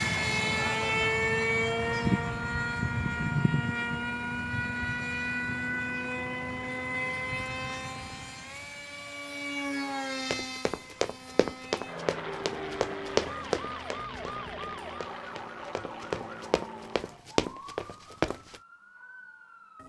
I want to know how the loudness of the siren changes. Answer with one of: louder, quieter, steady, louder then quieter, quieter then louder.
quieter.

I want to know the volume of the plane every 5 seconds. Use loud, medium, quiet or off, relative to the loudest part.
loud, medium, medium, quiet.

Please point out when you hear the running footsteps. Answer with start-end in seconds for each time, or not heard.
10.3-18.6.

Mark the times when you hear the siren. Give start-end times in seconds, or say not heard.
12.2-19.8.